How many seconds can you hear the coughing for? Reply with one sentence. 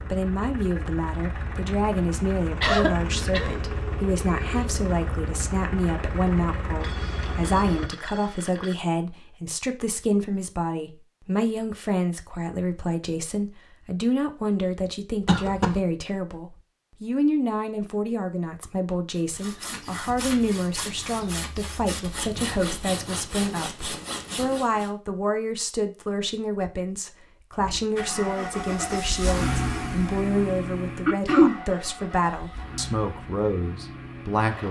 The coughing can be heard for 2 seconds in total.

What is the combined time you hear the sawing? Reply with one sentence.
You can hear the sawing for 6 seconds altogether.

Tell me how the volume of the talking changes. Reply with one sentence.
The volume of the talking stays about the same.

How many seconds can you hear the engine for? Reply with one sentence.
The engine can be heard for 15 seconds in total.